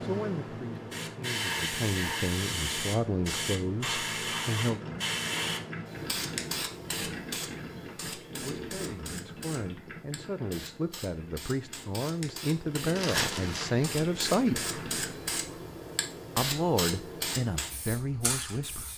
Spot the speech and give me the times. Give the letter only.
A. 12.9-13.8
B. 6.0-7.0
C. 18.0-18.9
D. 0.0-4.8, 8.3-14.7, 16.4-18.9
D.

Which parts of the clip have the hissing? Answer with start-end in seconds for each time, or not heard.
0.0-18.9.